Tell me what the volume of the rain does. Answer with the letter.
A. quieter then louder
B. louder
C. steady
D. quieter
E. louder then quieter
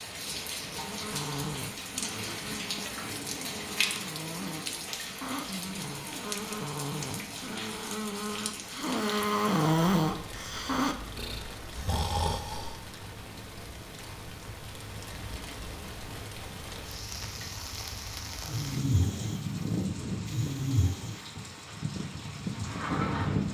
A.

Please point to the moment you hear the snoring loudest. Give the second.
10 s.